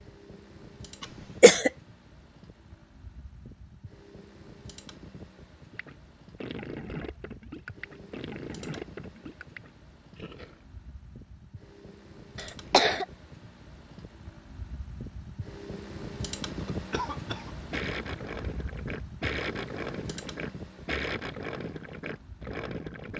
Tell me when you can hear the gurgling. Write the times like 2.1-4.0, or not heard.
5.7-10.7, 17.7-23.1.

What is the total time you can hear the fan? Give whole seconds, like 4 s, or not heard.
23 s.